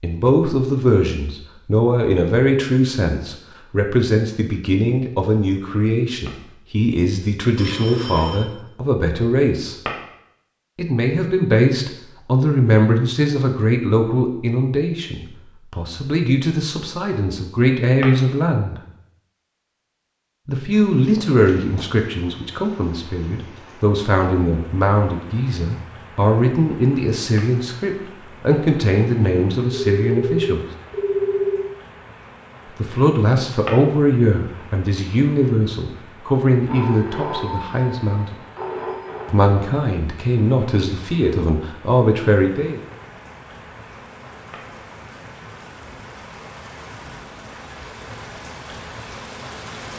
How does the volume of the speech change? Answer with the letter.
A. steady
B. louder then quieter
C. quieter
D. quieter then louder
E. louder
A.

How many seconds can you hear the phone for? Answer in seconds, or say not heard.
6 s.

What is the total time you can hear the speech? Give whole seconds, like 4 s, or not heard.
37 s.